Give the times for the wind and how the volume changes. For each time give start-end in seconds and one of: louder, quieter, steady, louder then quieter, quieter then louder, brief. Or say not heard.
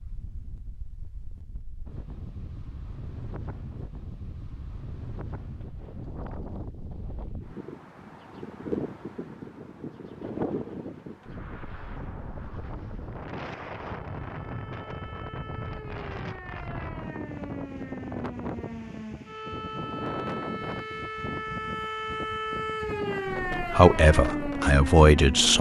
0.0-25.5 louder.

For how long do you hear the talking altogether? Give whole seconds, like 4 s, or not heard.
2 s.